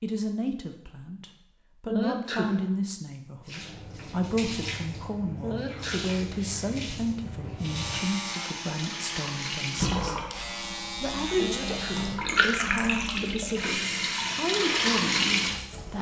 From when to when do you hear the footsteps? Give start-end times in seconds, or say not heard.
not heard.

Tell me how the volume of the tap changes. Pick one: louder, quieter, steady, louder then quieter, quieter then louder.
louder.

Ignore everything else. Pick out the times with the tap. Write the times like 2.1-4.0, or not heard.
3.5-15.9.